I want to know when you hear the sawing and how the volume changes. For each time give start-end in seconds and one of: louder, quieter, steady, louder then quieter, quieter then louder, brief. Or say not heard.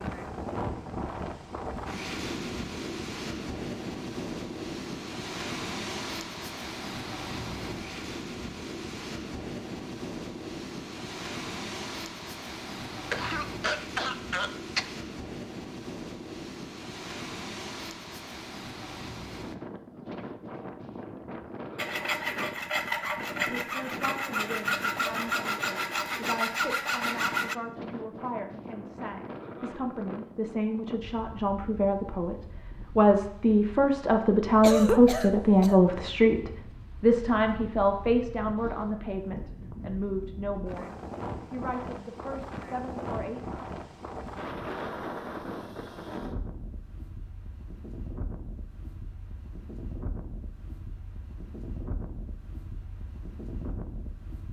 21.8-27.6 steady.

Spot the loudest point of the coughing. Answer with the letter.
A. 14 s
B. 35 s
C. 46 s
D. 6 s
B.